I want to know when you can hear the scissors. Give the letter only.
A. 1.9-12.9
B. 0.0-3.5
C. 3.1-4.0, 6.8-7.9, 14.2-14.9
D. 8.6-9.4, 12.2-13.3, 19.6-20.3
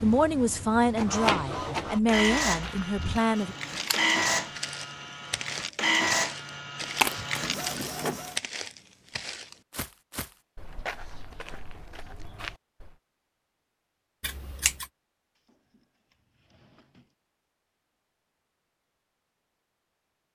C.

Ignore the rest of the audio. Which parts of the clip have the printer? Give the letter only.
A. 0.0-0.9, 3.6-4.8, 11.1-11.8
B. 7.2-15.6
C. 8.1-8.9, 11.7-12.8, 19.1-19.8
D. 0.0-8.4
D.